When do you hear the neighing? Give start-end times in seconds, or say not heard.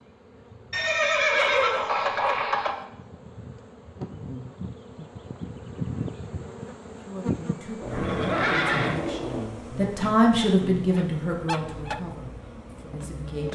0.7-2.8, 7.8-9.5.